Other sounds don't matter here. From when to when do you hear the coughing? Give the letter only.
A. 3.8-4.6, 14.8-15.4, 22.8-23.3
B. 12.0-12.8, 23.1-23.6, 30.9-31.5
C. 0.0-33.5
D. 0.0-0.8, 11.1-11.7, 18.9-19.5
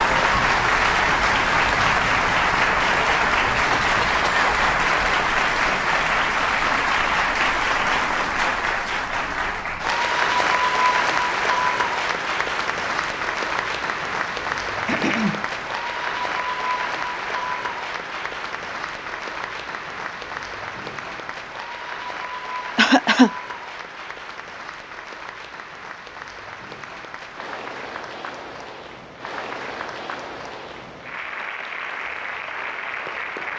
A.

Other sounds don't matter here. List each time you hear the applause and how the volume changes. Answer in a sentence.
The applause can be heard from 0.0 to 33.5 s, getting quieter.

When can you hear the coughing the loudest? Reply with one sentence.
The loudest moment of the coughing is at 23 seconds.